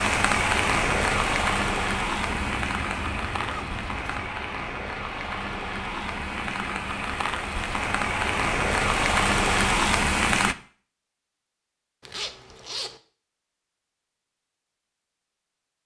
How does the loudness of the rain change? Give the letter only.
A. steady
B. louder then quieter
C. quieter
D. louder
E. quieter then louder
E.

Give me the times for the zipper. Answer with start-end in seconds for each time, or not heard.
2.5-4.3, 12.1-13.0.